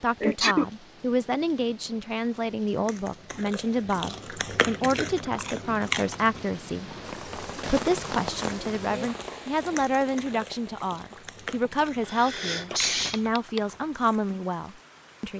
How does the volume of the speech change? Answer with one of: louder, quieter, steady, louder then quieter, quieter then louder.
steady.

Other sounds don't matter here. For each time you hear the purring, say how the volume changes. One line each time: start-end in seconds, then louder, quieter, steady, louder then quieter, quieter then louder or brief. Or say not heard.
not heard.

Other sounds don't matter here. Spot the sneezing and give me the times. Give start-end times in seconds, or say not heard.
0.2-0.7, 11.7-13.6.